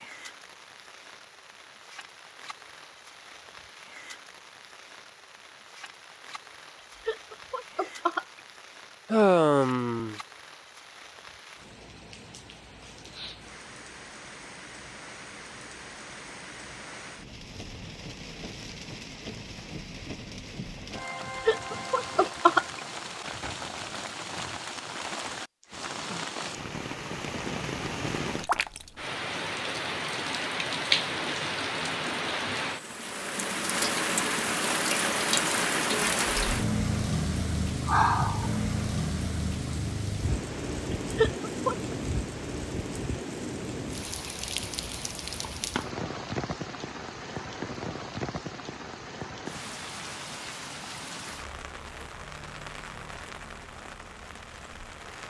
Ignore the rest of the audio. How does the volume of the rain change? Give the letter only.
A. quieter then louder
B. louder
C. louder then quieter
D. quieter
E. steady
C.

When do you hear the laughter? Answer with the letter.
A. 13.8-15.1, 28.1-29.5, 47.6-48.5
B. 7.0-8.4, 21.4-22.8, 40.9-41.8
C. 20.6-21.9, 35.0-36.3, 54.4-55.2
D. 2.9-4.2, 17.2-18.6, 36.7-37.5
B.